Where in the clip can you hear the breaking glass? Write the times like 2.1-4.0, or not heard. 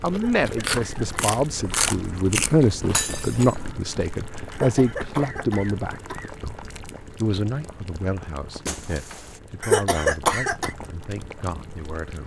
2.9-3.5, 8.7-9.4.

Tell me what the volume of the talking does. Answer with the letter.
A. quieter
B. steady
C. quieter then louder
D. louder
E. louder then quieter
A.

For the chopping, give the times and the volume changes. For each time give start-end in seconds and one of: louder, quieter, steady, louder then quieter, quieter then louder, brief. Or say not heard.
not heard.